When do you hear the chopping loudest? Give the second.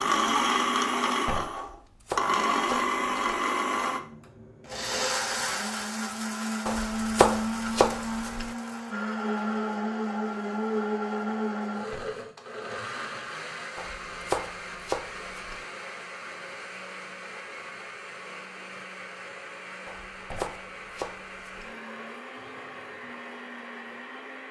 7 s.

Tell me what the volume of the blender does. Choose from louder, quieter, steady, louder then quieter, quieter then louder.
quieter.